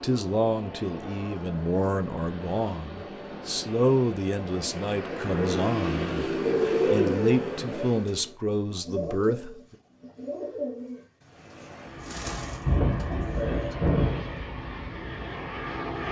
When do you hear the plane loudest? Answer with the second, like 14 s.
7 s.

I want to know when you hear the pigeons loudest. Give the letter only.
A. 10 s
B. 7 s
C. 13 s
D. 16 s
B.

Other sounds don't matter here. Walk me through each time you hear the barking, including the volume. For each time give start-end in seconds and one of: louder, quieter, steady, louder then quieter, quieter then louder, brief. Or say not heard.
not heard.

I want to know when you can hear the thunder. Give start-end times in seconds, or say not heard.
12.7-14.2.